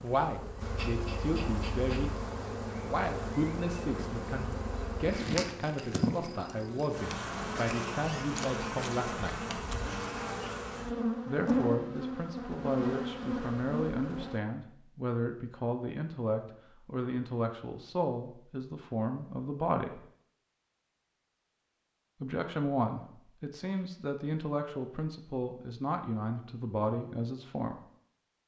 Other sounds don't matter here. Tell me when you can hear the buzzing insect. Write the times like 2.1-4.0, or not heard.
0.0-14.4.